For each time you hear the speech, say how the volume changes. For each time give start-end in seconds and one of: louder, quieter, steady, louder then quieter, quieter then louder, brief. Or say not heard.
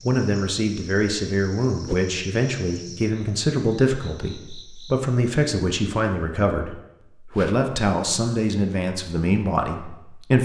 0.0-10.3 steady.